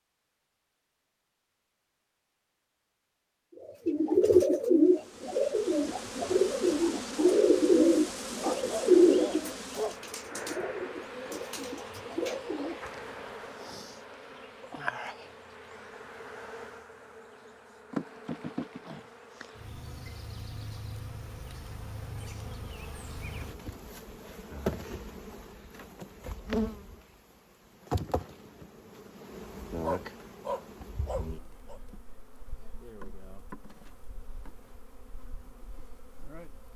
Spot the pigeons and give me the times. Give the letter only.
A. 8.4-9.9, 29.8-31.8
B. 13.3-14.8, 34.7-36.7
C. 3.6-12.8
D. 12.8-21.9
C.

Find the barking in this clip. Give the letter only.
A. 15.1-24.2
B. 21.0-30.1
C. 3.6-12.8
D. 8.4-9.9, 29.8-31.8
D.